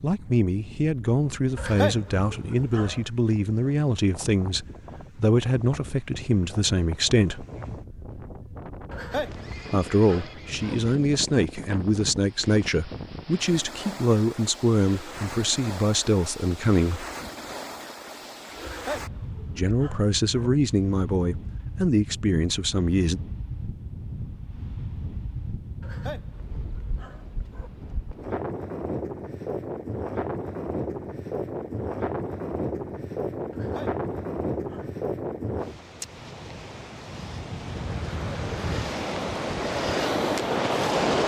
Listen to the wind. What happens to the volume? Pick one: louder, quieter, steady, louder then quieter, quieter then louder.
louder.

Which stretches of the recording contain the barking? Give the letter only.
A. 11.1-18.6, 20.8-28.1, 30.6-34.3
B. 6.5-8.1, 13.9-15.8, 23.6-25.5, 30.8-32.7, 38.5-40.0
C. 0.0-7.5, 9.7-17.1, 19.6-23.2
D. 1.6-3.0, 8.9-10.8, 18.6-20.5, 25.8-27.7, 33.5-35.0
D.